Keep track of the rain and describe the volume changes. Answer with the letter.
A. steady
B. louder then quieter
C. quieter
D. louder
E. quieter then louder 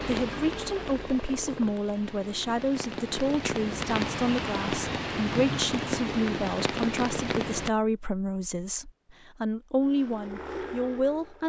D.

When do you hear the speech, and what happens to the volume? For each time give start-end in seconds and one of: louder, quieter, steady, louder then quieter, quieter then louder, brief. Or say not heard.
0.0-11.4 steady.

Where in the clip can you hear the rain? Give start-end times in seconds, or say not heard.
0.0-7.7.